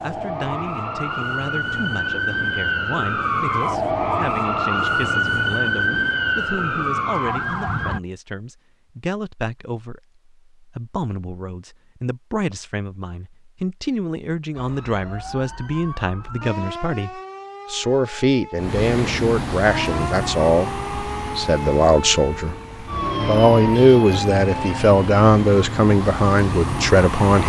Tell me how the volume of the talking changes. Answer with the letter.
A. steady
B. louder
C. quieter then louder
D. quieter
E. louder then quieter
B.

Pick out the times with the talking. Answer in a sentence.
You can hear the talking from 0.0 to 22.6 s and from 23.2 to 27.4 s.